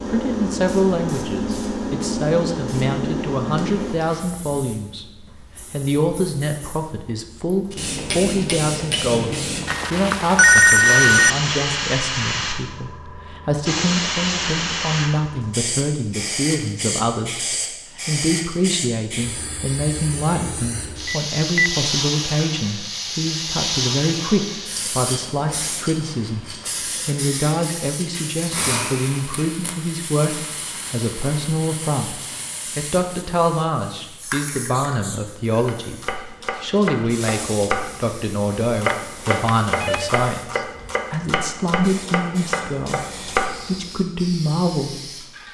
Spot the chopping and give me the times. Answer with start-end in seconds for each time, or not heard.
35.6-43.9.